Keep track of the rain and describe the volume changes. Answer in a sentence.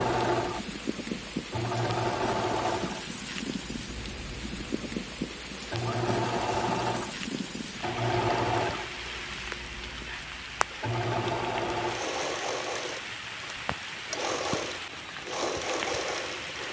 The loudness of the rain stays about the same.